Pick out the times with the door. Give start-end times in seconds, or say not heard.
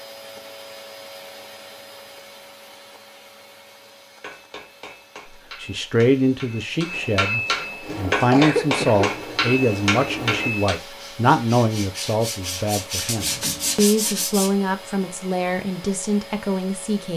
not heard.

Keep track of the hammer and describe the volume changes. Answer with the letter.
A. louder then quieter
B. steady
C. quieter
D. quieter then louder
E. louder
E.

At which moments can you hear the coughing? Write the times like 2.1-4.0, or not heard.
7.3-9.1.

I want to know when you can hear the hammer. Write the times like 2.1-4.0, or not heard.
4.2-10.8.